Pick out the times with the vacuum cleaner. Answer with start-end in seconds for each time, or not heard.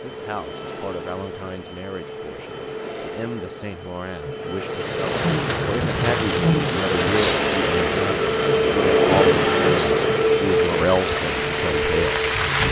0.0-12.6.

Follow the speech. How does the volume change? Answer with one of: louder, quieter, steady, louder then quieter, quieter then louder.
louder.